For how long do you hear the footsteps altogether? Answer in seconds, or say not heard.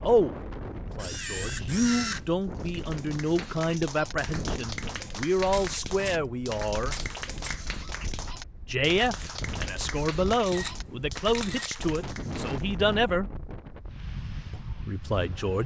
not heard.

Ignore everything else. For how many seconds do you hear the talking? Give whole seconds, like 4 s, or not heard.
13 s.